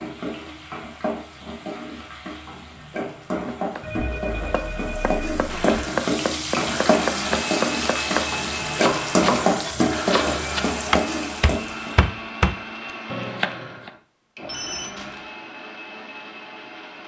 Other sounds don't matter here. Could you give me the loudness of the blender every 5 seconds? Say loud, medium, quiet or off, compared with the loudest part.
off, loud, loud, medium.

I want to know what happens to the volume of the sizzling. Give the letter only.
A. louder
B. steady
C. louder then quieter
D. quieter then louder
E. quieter
A.